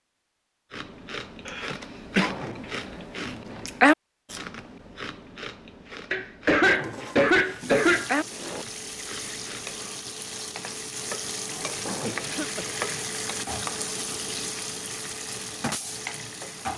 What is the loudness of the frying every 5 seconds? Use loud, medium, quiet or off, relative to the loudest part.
off, medium, loud, loud.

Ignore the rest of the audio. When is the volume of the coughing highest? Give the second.
7 s.